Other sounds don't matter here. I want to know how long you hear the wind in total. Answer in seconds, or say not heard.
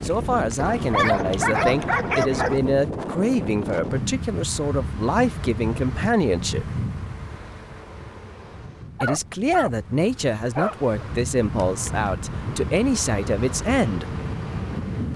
15 s.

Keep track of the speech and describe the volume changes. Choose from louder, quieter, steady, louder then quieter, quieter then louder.
steady.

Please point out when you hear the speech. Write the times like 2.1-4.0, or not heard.
0.0-6.7, 9.0-14.2.